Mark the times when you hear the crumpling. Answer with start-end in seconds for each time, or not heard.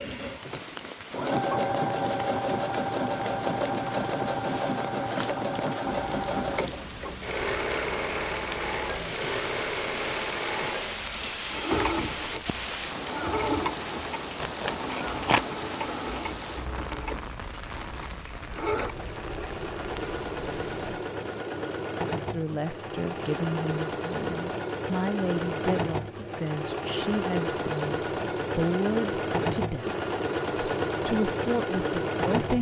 14.4-15.4.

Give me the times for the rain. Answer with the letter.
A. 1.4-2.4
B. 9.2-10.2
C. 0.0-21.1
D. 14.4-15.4
C.